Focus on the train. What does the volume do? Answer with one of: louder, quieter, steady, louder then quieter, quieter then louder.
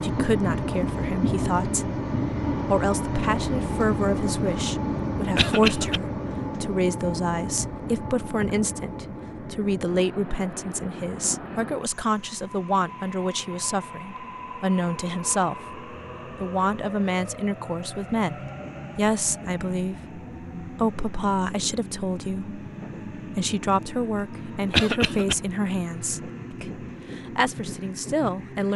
quieter.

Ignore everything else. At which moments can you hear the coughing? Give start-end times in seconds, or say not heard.
5.3-6.0, 24.7-25.4.